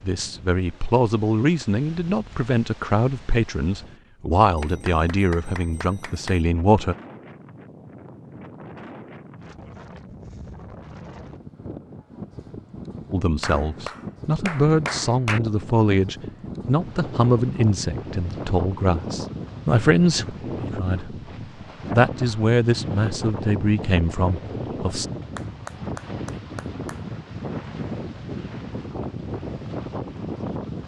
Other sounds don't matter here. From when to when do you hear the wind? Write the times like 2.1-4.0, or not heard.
0.0-30.8.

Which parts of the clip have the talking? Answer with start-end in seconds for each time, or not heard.
0.0-7.0, 13.1-21.1, 21.9-25.1.